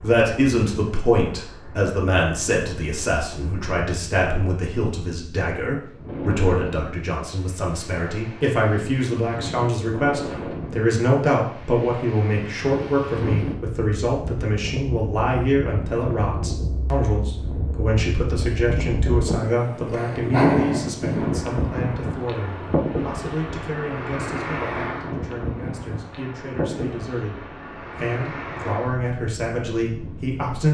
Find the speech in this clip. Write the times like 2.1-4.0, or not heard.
0.0-30.6.